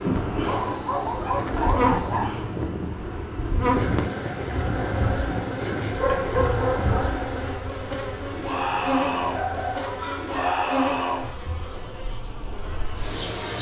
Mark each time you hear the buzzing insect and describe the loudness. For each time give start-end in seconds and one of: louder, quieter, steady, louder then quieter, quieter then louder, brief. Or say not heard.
0.0-13.5 steady.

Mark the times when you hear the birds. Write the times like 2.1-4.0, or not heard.
not heard.